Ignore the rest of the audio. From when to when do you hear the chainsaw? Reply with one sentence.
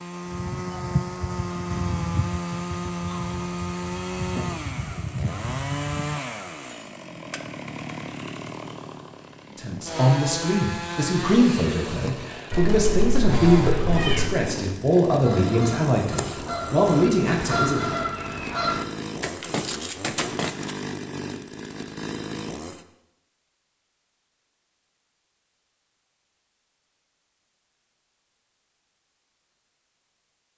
You can hear the chainsaw from 0.0 to 22.9 s.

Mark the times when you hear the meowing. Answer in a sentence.
The meowing can be heard from 12.5 to 14.3 s.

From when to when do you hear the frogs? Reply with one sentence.
You can't hear the frogs here.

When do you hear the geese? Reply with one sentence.
You can hear the geese from 0.2 to 6.2 s and from 15.1 to 20.8 s.